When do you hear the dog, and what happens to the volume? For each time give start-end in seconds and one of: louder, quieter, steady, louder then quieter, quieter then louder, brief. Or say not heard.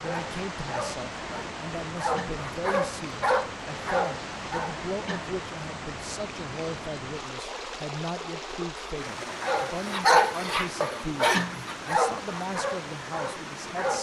0.0-4.8 quieter then louder
9.4-13.9 quieter.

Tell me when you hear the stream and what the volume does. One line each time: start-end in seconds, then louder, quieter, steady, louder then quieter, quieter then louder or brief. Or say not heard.
0.0-13.9 steady.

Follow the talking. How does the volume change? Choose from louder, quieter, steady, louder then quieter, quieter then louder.
steady.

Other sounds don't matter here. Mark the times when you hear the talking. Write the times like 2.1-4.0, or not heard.
0.0-13.9.